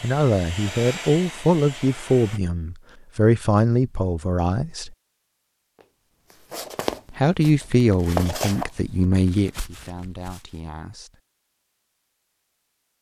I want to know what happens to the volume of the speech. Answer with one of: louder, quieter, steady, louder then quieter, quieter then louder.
quieter.